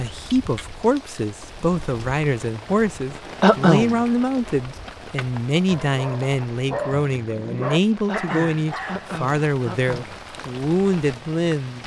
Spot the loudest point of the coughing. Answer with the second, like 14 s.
4 s.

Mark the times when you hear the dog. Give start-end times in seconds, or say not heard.
5.7-9.2.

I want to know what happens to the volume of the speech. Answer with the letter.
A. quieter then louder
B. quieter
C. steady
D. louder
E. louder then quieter
C.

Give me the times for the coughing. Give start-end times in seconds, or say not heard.
3.4-4.0, 8.1-10.2.